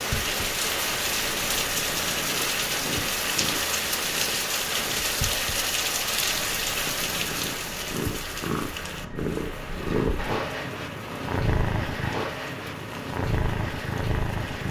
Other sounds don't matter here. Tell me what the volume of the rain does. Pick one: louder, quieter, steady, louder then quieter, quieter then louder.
quieter.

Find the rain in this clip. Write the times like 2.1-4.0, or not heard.
0.0-14.6.